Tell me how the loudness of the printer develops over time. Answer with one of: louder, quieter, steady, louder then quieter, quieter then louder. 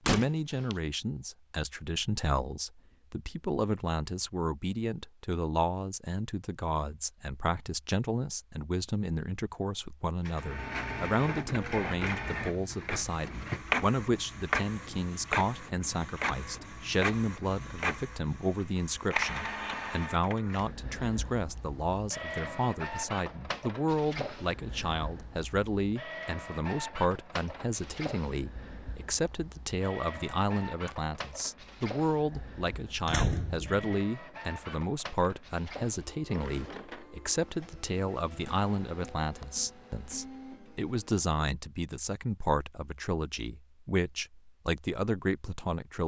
quieter.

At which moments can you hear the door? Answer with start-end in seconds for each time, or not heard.
0.1-0.8, 33.0-34.0.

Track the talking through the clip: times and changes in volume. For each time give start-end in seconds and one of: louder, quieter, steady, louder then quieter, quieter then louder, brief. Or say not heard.
0.1-46.0 steady.